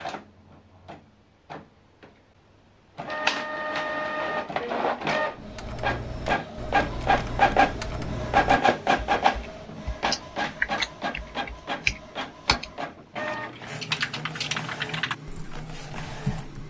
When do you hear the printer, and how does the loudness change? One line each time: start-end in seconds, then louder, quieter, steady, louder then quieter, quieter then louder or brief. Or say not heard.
0.0-16.6 louder then quieter.